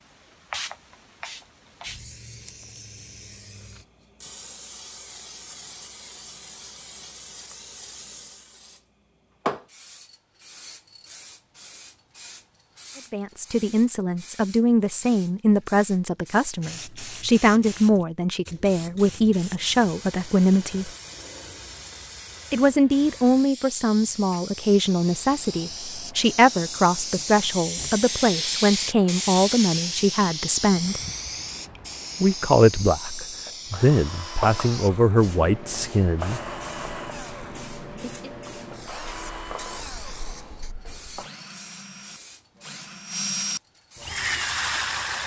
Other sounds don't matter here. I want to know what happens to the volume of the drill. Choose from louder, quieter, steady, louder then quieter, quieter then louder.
quieter then louder.